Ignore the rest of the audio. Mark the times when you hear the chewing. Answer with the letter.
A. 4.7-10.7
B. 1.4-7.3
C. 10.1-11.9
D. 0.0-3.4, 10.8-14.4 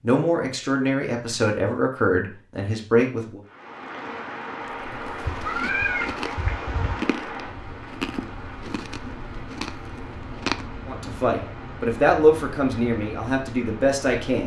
A.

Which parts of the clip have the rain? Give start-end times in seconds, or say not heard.
3.5-14.4.